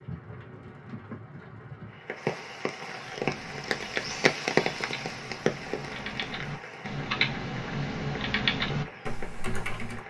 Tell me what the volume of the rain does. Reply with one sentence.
The loudness of the rain goes up, then down.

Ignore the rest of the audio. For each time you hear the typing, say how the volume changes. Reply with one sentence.
The typing can be heard from 3.1 to 10.0 s, getting louder.